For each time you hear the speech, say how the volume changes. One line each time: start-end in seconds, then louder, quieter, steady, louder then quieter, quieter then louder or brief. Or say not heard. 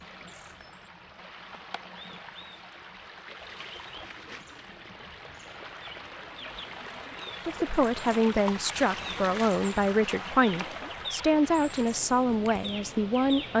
7.5-13.5 steady.